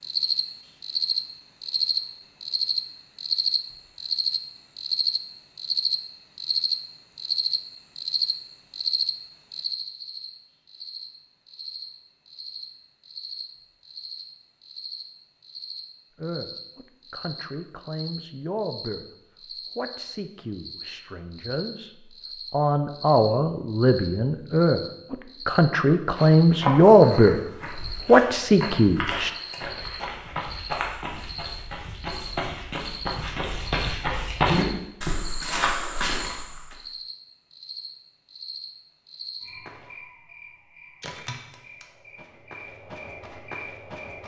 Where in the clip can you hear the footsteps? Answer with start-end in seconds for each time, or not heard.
26.1-36.8.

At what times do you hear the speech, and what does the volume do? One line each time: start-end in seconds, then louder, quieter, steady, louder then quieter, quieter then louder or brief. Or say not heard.
16.1-19.1 brief
19.8-29.3 louder.